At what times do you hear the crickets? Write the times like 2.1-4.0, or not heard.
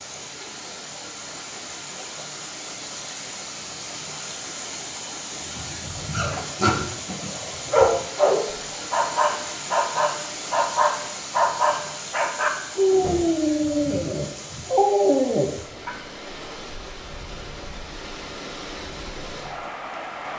not heard.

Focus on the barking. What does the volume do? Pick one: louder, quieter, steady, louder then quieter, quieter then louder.
steady.